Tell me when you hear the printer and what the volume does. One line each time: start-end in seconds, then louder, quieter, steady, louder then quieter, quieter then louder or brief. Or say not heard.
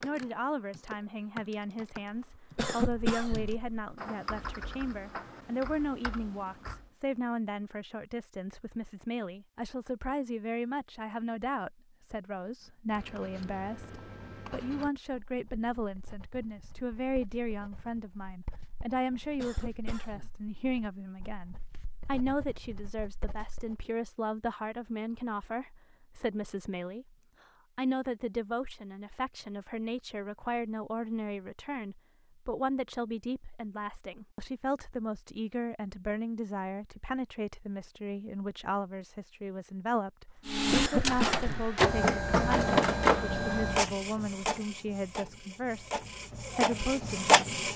40.5-47.7 quieter then louder.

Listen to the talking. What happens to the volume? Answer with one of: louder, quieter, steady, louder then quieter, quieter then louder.
steady.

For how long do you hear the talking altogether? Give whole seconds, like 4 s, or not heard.
47 s.